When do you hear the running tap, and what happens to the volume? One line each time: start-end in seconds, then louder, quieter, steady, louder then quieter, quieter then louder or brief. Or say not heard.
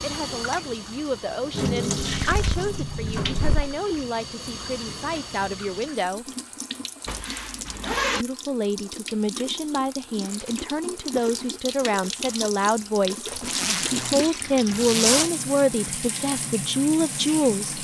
0.0-17.7 quieter then louder.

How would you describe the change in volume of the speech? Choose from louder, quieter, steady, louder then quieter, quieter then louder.
louder.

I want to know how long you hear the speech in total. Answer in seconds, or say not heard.
16 s.